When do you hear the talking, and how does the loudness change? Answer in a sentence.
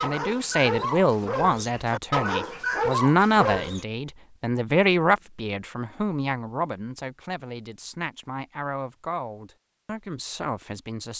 You can hear the talking from 0.0 to 11.1 s, getting quieter.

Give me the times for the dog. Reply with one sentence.
The dog can be heard from 0.0 to 3.9 s.